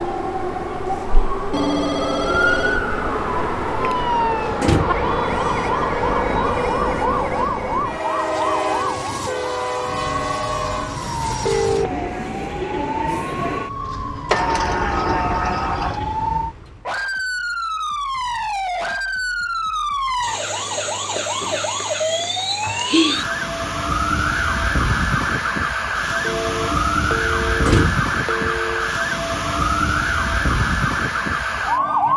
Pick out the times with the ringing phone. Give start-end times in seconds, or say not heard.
1.5-2.9, 11.4-12.1, 26.2-28.9.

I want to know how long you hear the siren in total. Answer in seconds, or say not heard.
32 s.